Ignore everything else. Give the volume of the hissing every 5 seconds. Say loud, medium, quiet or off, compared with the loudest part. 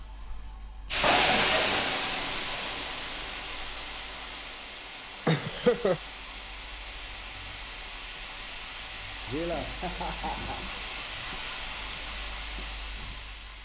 loud, medium, medium.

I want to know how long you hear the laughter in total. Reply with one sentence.
You can hear the laughter for 4 seconds altogether.